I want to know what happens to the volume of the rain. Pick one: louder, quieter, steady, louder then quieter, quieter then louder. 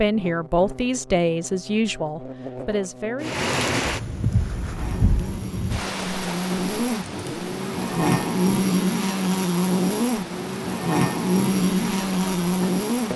quieter.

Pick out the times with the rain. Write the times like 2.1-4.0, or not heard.
3.2-13.1.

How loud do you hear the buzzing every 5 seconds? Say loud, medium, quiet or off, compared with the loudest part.
quiet, loud, loud.